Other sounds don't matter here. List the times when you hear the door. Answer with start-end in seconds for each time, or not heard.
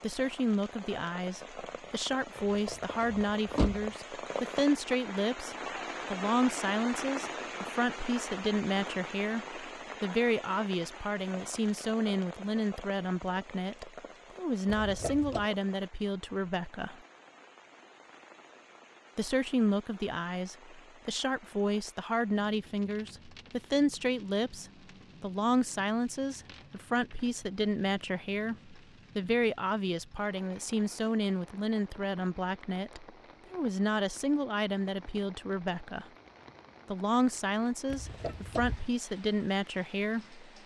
2.4-4.0, 14.7-15.4, 37.9-38.9.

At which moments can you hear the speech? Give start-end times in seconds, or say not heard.
0.0-16.9, 19.1-36.0, 36.9-40.5.